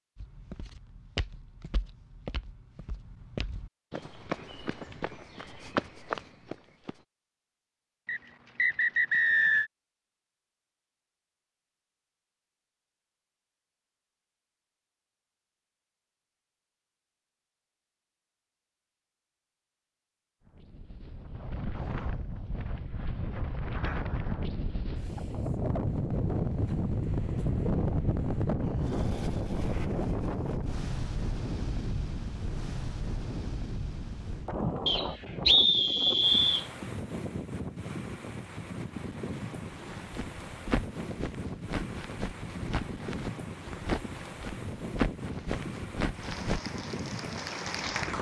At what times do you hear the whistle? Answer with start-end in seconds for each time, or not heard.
8.1-9.7, 34.9-36.6.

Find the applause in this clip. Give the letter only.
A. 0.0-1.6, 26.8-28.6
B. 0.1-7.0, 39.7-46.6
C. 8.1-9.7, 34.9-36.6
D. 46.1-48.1
D.